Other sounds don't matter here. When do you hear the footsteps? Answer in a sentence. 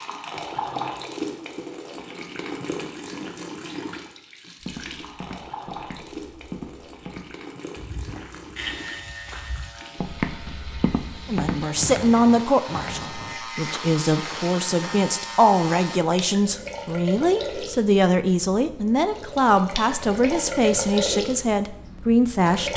You can hear the footsteps from 4.6 to 15.1 s.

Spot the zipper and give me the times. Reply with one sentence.
You can't hear the zipper here.